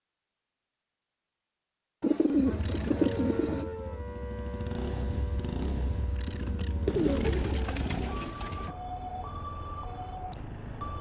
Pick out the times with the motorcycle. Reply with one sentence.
You can hear the motorcycle from 2.3 to 8.2 s.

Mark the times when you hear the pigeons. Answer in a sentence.
The pigeons can be heard from 2.0 to 3.7 s and from 6.8 to 8.8 s.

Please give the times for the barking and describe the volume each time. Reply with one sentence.
You can't hear the barking here.